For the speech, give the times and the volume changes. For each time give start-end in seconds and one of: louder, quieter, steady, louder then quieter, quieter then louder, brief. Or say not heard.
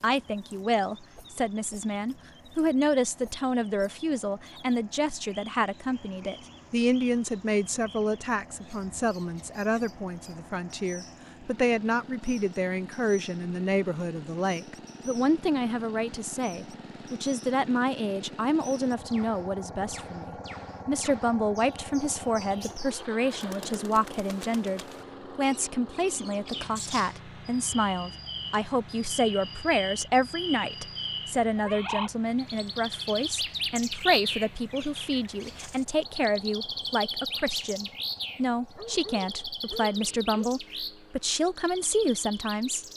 0.0-42.9 steady.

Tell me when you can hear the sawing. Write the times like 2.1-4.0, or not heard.
not heard.